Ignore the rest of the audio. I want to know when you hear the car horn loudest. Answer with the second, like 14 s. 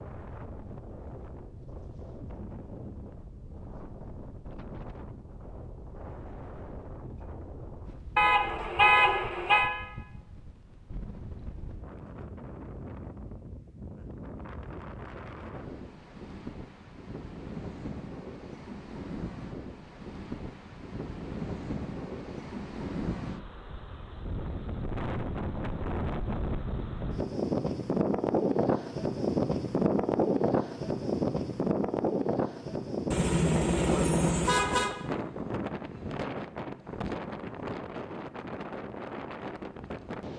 9 s.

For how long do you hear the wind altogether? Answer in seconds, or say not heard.
40 s.